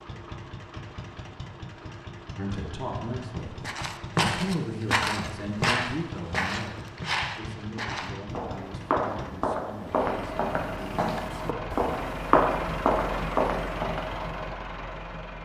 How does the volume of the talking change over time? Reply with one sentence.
The volume of the talking goes down.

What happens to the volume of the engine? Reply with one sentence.
The volume of the engine goes up.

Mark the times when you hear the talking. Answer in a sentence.
You can hear the talking from 2.4 to 11.7 s.